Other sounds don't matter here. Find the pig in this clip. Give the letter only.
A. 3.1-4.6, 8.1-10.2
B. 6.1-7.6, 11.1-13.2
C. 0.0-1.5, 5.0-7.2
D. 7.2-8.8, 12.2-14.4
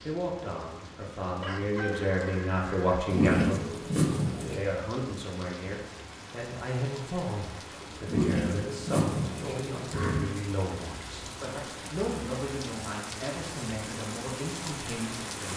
A.